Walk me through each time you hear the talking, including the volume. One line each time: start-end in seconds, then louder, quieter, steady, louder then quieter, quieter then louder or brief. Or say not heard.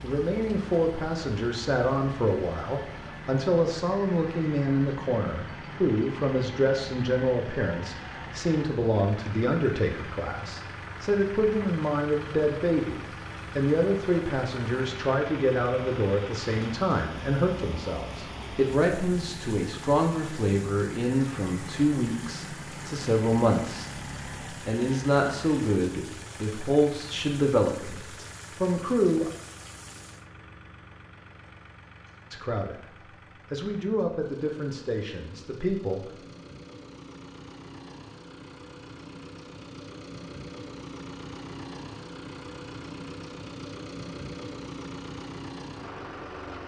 0.0-29.3 steady
32.3-32.9 brief
33.5-36.0 brief.